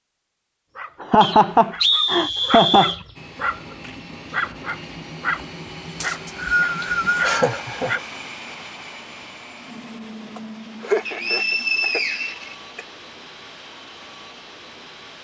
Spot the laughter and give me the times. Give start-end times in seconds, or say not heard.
1.0-3.0, 6.8-8.0, 10.3-12.0.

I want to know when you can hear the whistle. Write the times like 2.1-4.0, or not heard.
1.2-3.0, 6.0-7.3, 11.1-12.6.